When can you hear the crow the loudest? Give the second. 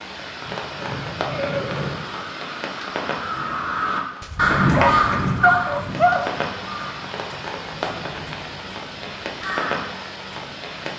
5 s.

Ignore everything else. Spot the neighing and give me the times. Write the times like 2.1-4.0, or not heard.
0.4-2.0.